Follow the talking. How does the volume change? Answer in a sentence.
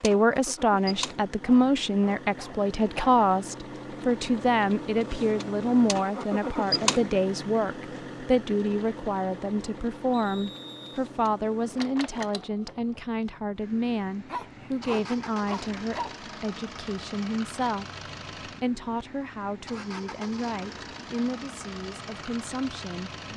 The loudness of the talking goes down.